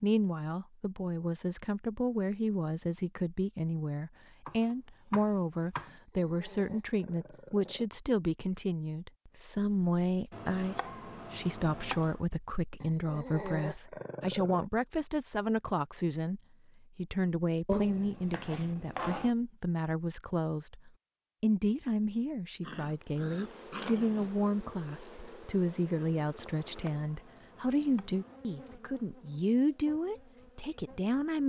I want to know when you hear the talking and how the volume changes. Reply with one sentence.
You can hear the talking from 0.0 to 31.4 s, at a steady volume.